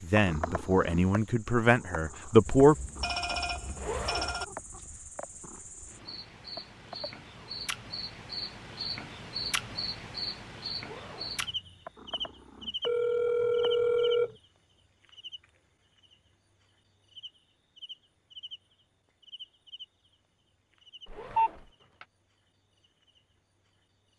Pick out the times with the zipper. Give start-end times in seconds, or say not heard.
3.8-4.4, 10.8-11.4, 21.1-22.1.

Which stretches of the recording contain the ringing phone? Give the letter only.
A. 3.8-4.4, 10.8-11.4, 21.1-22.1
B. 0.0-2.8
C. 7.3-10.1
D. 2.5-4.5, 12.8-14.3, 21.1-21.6
D.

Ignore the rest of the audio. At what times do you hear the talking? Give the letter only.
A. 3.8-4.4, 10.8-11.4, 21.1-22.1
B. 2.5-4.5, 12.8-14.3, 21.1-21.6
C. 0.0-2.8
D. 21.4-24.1
C.